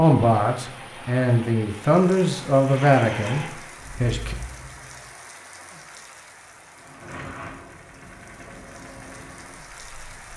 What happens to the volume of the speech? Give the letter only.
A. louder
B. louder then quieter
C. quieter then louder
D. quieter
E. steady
B.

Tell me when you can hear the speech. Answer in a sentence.
You can hear the speech from 0.0 to 4.3 s.